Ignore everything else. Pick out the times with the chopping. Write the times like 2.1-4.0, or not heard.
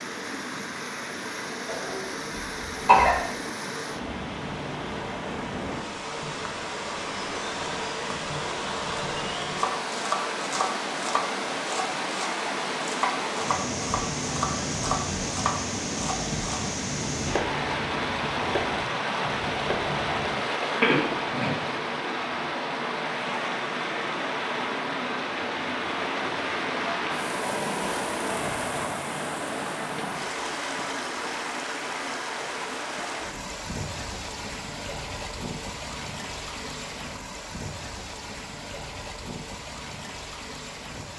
9.6-20.4.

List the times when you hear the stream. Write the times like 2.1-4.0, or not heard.
0.0-41.1.